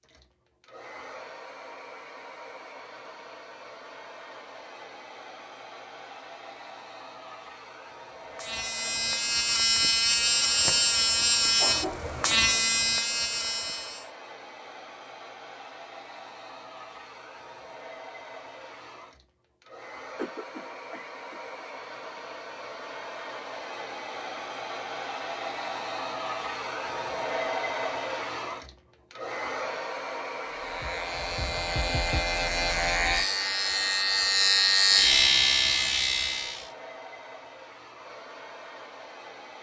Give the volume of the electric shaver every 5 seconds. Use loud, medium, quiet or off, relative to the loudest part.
off, loud, loud, off, off, off, loud, loud.